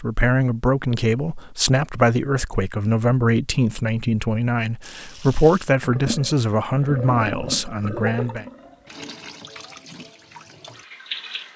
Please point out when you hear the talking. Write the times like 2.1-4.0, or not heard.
0.0-8.4.